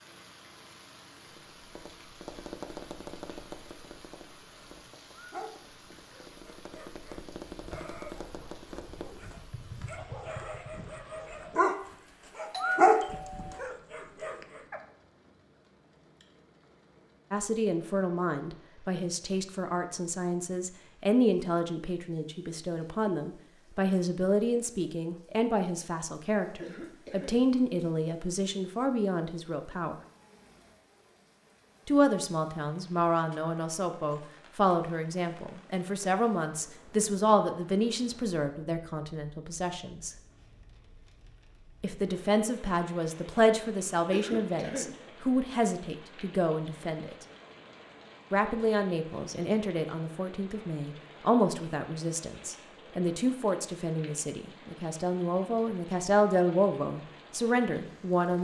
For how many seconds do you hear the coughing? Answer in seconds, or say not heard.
2 s.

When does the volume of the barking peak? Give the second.
13 s.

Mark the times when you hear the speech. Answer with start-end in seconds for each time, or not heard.
17.3-29.9, 31.9-40.1, 41.8-47.2, 48.3-58.3.